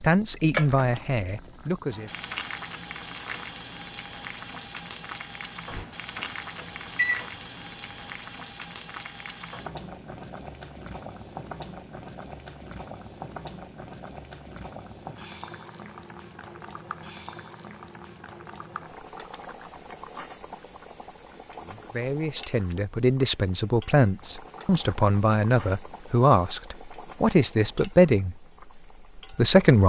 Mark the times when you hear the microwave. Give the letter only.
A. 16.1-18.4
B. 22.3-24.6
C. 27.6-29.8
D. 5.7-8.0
D.